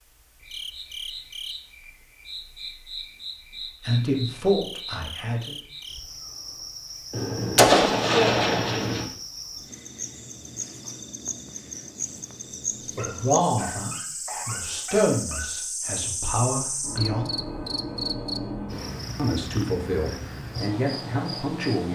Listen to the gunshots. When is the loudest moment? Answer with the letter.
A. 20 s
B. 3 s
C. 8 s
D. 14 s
C.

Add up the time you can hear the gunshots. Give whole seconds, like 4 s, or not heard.
2 s.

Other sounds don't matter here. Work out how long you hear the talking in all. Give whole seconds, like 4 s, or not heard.
9 s.